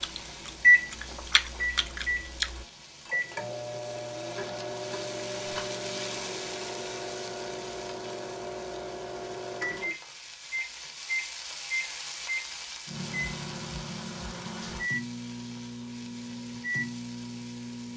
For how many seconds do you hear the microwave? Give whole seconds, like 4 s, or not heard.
18 s.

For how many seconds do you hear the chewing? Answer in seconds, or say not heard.
3 s.